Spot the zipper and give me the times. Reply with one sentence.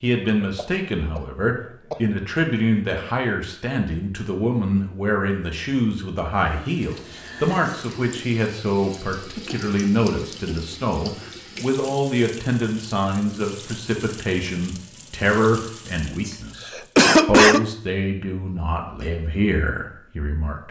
You can't hear the zipper here.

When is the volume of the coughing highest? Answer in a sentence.
The loudest moment of the coughing is at 17 seconds.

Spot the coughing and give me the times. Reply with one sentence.
The coughing can be heard from 0.4 to 2.2 s and from 16.2 to 17.6 s.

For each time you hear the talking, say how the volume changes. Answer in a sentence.
You can hear the talking from 0.0 to 20.6 s, at a steady volume.